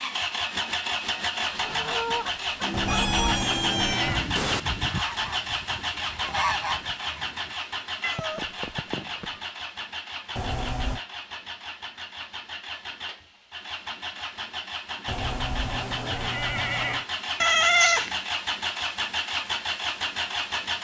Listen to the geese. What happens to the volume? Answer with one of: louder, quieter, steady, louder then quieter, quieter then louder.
quieter then louder.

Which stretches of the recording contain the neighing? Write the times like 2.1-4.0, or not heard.
2.7-4.3, 10.3-11.0, 15.1-17.1.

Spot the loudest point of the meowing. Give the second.
18 s.